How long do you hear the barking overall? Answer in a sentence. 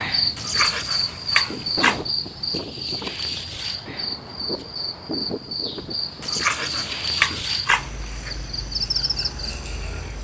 The barking can be heard for 4 seconds in total.